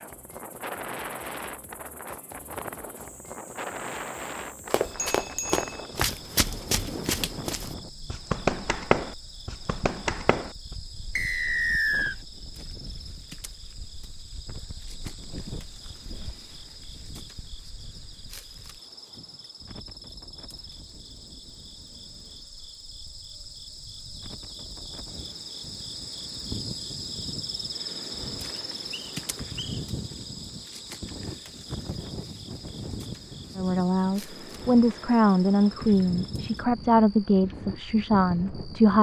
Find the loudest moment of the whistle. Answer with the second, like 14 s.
12 s.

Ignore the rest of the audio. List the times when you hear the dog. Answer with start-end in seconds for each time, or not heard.
not heard.